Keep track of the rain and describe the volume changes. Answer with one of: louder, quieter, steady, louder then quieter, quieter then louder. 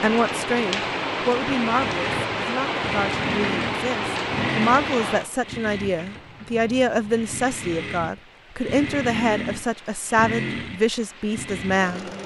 quieter.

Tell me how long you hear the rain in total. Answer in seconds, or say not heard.
12 s.